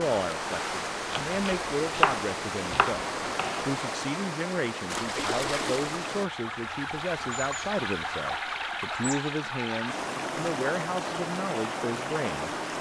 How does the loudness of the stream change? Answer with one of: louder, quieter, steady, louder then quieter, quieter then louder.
steady.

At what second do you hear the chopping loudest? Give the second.
2 s.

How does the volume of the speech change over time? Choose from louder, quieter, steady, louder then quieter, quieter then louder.
steady.